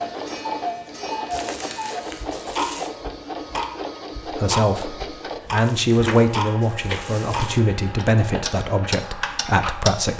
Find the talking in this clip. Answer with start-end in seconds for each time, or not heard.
4.2-10.1.